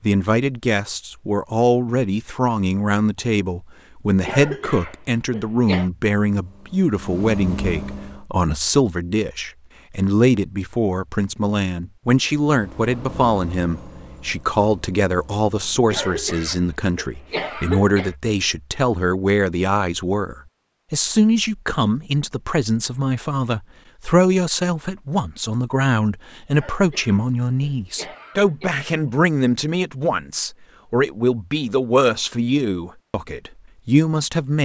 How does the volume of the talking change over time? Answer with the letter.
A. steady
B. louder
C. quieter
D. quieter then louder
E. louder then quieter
A.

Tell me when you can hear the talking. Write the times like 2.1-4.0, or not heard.
0.0-34.5.